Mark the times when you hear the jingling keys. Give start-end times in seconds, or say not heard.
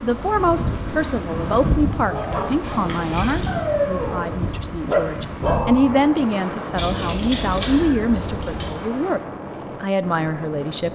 2.6-3.6, 6.7-8.8.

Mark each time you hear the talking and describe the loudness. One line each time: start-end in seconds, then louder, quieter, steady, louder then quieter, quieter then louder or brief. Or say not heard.
0.0-9.2 quieter then louder
9.8-10.8 brief.